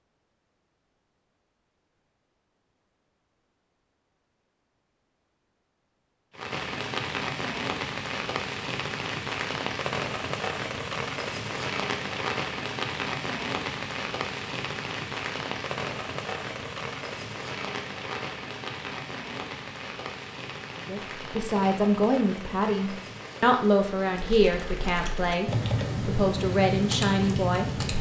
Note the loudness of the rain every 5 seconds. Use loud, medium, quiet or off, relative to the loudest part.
off, loud, loud, loud, medium, medium.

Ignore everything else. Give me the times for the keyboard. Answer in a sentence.
You can hear the keyboard from 24.1 to 27.9 s.